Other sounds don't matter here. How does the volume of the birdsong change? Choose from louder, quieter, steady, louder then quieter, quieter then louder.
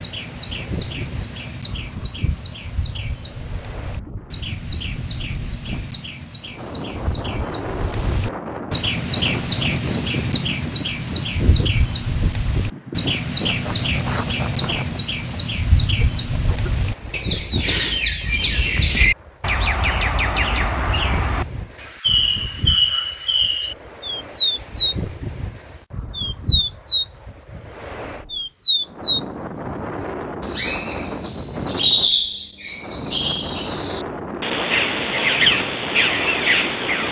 louder.